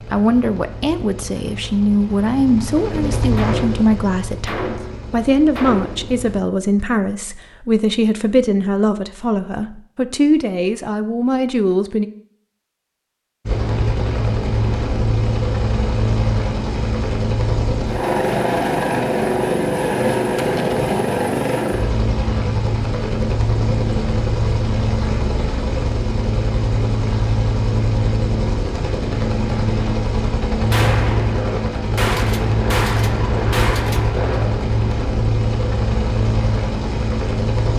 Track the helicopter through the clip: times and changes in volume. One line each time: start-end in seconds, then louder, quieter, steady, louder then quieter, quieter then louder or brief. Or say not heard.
0.0-6.4 louder then quieter
13.4-37.7 steady.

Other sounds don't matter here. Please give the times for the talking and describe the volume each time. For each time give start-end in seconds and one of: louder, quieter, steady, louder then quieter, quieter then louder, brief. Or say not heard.
0.1-12.1 steady.